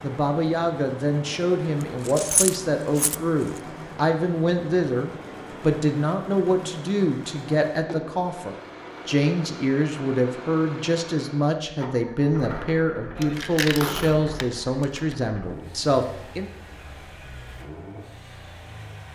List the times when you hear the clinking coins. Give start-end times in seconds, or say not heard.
1.8-3.6, 13.2-15.2.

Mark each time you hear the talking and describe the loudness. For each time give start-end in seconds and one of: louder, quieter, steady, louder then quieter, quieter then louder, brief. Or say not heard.
0.0-16.5 steady.